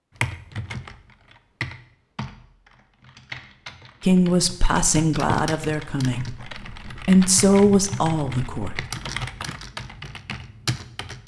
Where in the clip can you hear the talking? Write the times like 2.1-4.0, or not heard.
4.0-8.8.